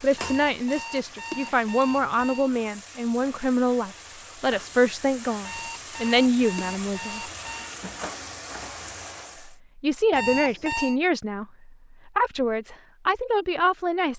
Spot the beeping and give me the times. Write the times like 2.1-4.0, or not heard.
0.1-2.5, 5.5-7.7, 10.1-11.0.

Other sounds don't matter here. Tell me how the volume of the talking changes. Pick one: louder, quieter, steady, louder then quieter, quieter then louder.
steady.